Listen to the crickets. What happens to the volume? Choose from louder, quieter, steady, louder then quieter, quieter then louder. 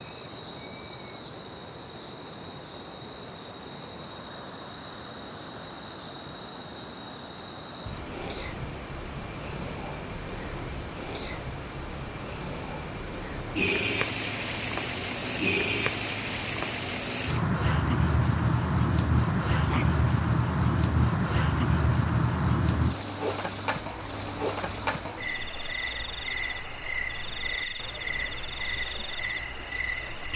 steady.